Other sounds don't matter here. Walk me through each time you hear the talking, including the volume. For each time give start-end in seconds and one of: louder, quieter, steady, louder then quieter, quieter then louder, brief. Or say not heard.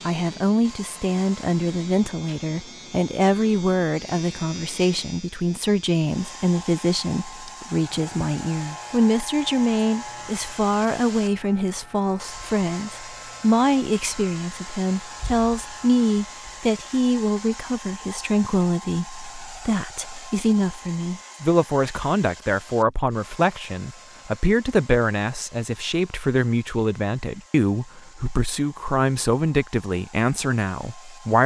0.1-31.4 steady.